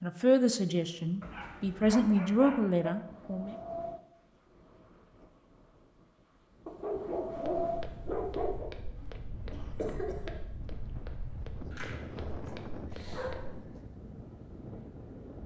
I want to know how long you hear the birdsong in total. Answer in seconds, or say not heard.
not heard.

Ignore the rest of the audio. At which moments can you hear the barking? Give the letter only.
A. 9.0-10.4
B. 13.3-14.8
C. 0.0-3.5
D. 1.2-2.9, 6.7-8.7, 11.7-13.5
D.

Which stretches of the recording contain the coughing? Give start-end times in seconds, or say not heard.
9.0-10.4.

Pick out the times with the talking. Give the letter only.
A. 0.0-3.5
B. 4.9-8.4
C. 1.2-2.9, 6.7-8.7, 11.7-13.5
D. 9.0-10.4
A.